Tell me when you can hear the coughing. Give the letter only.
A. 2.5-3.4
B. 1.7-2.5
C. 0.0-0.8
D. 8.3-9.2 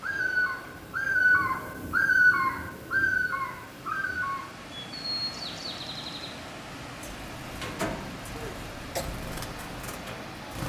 D.